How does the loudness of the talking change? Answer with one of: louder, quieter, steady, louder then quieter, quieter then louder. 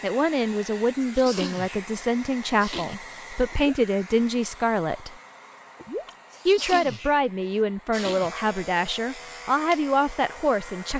steady.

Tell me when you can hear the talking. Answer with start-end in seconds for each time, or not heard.
0.0-5.2, 6.5-10.9.